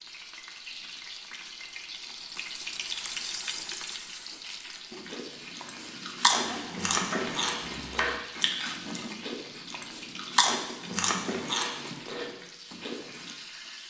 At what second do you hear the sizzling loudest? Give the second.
3 s.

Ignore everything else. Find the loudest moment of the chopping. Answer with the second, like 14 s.
8 s.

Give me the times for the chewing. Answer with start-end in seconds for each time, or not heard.
4.9-13.3.